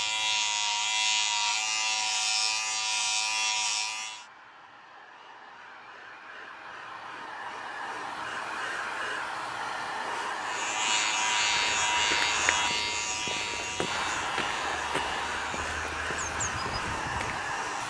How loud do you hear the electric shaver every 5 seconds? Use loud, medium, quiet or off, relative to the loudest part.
loud, off, loud, quiet.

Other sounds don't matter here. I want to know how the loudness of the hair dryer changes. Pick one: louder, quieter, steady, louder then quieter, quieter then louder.
louder.